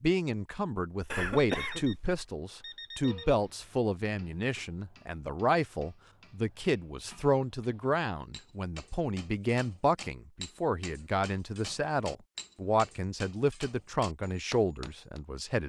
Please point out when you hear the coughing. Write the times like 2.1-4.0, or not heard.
1.1-2.2.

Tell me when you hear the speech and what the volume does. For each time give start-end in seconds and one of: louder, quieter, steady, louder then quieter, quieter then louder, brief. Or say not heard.
0.0-15.6 steady.